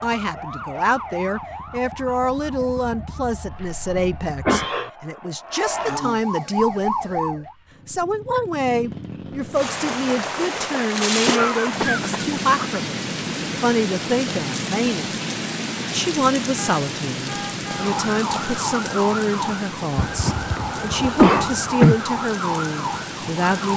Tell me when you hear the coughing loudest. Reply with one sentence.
The volume of the coughing peaks at 21 seconds.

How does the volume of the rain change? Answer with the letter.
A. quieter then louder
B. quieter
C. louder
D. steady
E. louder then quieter
B.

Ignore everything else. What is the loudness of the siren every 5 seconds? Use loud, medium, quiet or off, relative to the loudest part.
medium, loud, off, loud, loud.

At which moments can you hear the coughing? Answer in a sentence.
You can hear the coughing from 3.5 to 4.9 s, from 11.2 to 12.7 s and from 19.9 to 21.9 s.